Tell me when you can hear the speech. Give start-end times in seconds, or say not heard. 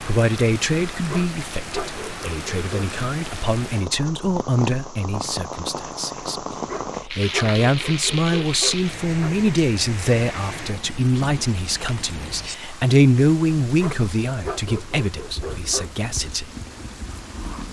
0.0-16.5.